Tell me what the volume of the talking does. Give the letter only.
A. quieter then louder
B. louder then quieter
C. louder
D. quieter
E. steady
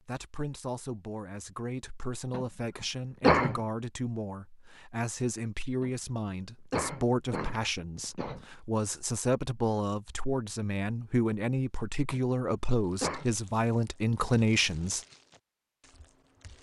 C.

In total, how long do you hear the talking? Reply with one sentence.
You can hear the talking for 15 seconds altogether.